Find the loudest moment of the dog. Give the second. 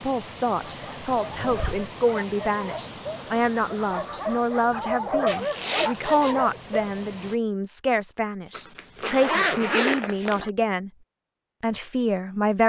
5 s.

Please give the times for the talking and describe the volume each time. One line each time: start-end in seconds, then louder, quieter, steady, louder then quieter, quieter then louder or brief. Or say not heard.
0.0-10.9 steady
11.6-12.6 brief.